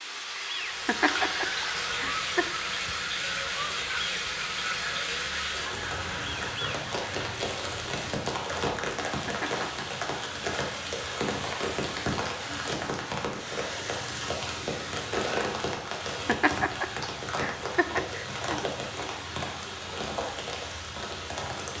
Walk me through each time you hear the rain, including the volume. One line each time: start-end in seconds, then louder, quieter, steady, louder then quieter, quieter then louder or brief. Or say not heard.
0.0-21.7 steady.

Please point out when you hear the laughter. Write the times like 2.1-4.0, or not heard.
0.8-2.5, 9.2-9.8, 16.2-18.7.